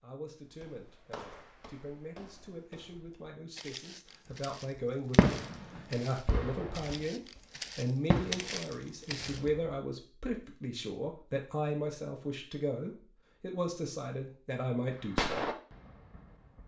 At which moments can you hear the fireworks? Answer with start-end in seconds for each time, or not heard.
4.3-7.4, 8.1-9.8, 14.9-16.6.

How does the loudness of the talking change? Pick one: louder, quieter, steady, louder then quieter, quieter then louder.
louder.